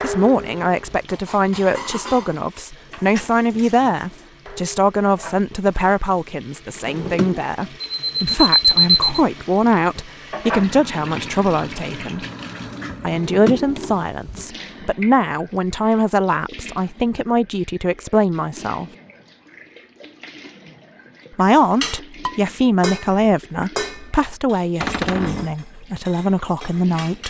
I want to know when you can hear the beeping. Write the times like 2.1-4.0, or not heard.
7.8-9.2.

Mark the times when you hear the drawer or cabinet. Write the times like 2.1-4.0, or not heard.
6.8-7.5, 13.0-14.4, 24.8-25.6.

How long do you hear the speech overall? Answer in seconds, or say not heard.
24 s.